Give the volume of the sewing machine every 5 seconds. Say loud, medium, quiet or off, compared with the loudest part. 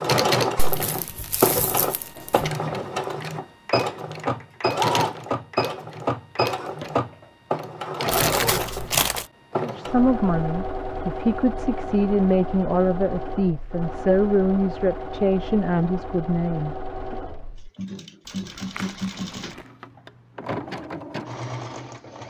loud, loud, medium, medium, medium.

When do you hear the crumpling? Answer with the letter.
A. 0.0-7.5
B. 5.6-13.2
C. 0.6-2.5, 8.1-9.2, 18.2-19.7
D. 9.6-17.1
C.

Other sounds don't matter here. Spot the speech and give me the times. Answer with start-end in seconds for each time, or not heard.
9.6-17.1.